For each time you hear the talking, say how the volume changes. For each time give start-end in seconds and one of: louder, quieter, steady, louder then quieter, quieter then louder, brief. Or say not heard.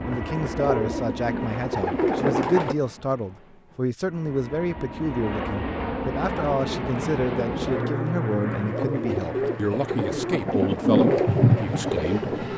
0.0-12.3 steady.